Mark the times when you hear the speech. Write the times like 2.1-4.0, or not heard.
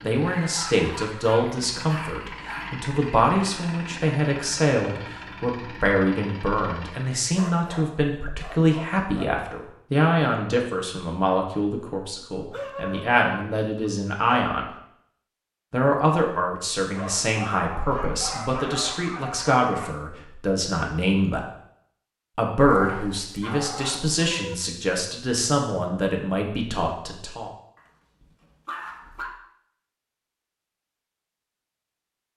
0.0-14.7, 15.7-21.4, 22.4-27.5.